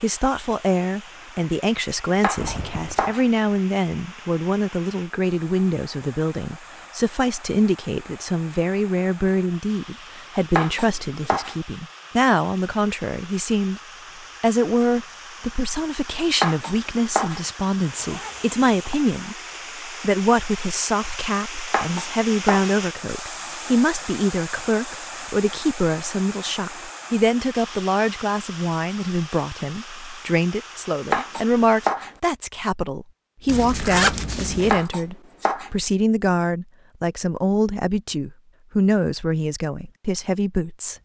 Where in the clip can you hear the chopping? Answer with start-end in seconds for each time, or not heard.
2.2-3.2, 10.6-11.6, 16.4-17.4, 21.7-22.8, 31.1-32.1, 34.7-35.7.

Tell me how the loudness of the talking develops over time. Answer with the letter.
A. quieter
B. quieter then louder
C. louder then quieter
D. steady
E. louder
D.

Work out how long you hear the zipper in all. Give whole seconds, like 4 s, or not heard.
3 s.